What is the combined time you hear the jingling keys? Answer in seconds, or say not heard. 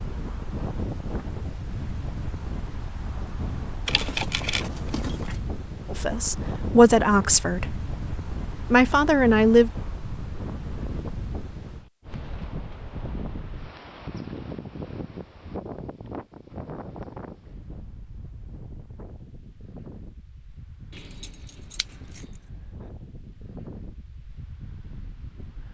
3 s.